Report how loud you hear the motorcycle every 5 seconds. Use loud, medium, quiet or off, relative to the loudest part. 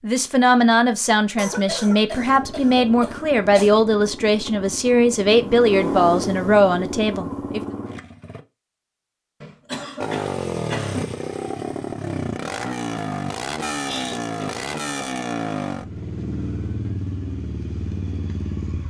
medium, loud, loud, loud.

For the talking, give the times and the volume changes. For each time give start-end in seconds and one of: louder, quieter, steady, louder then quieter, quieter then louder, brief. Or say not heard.
0.0-7.6 steady.